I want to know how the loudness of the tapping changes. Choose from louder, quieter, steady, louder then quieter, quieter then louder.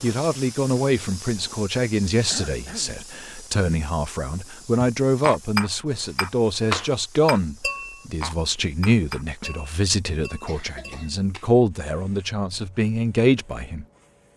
louder then quieter.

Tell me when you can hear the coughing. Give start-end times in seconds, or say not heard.
2.3-3.0, 10.4-11.2.